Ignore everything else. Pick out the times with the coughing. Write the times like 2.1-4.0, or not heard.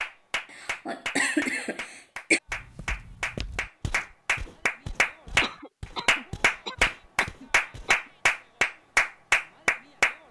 0.5-2.4, 5.4-8.1.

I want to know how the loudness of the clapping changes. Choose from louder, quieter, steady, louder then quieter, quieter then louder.
louder.